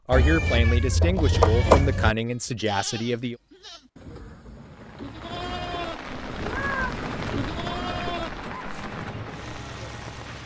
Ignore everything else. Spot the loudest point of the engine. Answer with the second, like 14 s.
7 s.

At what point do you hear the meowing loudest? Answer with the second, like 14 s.
2 s.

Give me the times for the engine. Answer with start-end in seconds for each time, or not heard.
6.6-10.4.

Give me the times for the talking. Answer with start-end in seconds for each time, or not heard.
0.1-3.4.